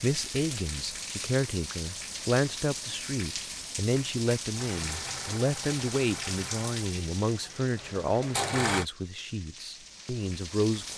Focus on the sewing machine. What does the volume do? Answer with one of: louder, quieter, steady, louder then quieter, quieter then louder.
quieter then louder.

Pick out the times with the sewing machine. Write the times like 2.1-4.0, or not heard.
4.5-8.8.